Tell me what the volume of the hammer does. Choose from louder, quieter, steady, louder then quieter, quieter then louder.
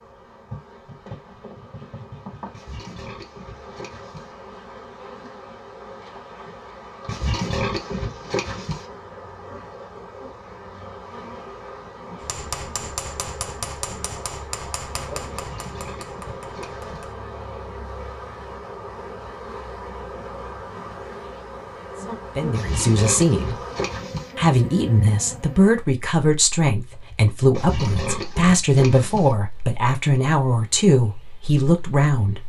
quieter.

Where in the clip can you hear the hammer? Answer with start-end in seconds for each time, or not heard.
12.2-17.4.